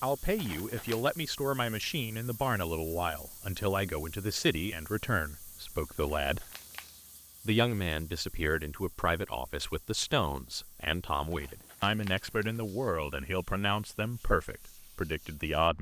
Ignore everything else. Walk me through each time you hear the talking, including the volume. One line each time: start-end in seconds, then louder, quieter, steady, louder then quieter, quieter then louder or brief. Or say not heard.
0.0-6.5 steady
7.5-15.7 steady.